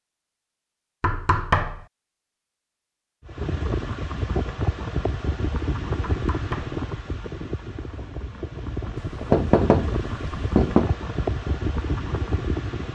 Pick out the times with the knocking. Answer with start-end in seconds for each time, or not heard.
1.0-1.9, 6.0-6.8, 8.9-10.9.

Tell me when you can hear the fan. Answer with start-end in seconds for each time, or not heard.
3.2-12.9.